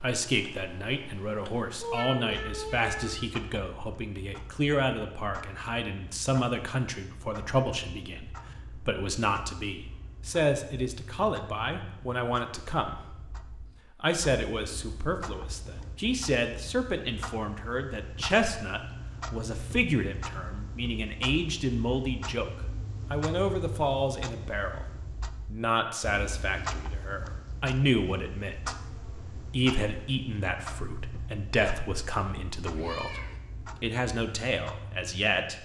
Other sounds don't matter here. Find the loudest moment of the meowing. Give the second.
2 s.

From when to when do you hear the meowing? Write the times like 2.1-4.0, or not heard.
1.8-3.2, 32.6-33.4.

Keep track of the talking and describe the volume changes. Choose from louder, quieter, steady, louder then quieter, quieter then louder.
steady.